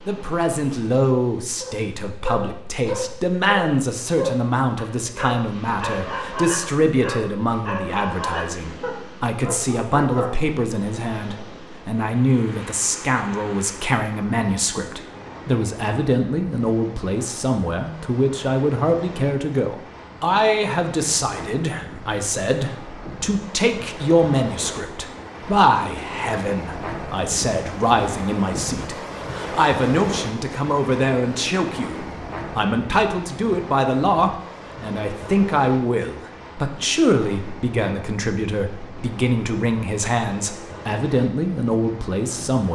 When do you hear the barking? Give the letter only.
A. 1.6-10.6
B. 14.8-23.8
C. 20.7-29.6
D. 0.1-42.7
A.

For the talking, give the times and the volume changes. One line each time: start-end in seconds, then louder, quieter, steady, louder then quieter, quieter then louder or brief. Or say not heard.
0.1-42.7 steady.